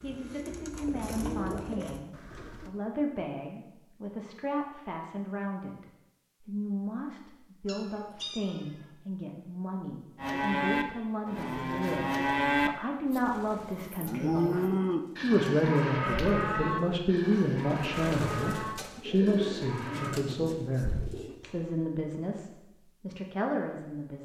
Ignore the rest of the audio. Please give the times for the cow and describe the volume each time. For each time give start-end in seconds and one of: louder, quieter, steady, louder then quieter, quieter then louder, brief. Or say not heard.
10.2-20.1 quieter.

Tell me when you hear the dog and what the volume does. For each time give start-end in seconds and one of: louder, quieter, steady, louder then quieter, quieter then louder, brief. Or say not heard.
not heard.